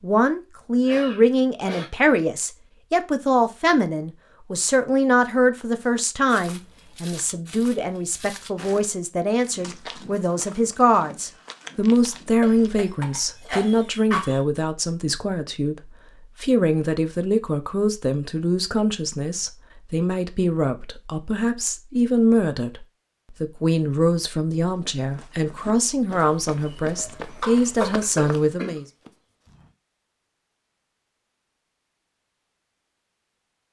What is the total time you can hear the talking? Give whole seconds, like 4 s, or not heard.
29 s.